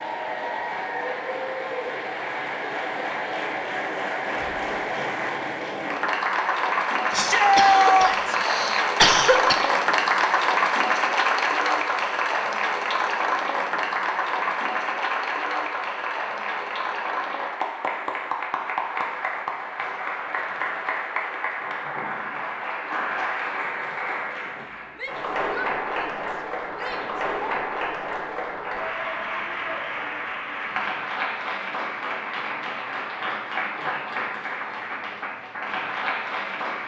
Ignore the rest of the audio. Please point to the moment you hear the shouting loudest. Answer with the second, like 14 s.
8 s.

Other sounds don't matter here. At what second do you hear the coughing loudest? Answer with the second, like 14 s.
9 s.